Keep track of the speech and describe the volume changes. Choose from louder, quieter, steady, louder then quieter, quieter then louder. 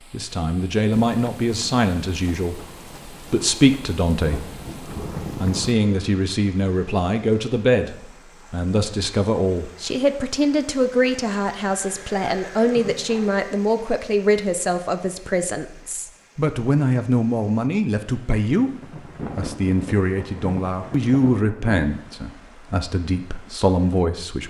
steady.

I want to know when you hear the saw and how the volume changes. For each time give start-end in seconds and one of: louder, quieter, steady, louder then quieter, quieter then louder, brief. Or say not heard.
not heard.